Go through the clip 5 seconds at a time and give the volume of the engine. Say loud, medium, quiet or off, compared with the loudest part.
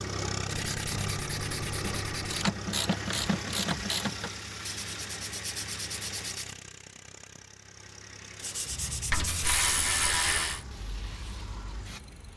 loud, medium, quiet.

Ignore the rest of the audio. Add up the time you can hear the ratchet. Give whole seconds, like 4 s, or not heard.
4 s.